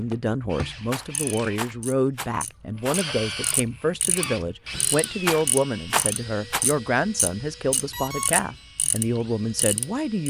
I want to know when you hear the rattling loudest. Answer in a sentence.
The volume of the rattling peaks at 6 seconds.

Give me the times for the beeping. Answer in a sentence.
You can hear the beeping from 7.9 to 8.7 s.